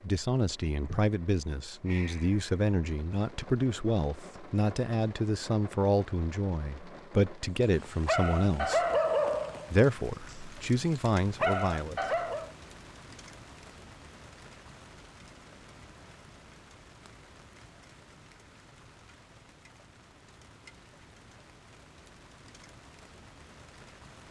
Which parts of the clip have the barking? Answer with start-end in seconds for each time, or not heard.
7.5-12.5.